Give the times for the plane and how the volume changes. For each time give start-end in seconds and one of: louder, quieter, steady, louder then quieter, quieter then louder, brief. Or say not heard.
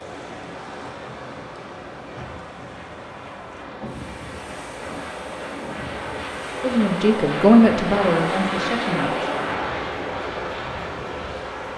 0.0-11.7 louder.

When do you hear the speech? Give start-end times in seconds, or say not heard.
6.6-9.3.